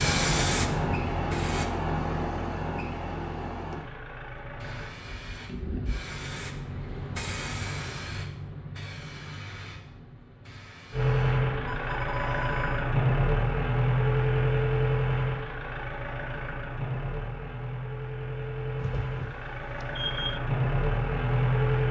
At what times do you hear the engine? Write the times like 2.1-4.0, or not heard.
0.0-5.0, 10.9-21.8.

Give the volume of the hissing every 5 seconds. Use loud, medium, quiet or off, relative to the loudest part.
loud, medium, quiet, off, off.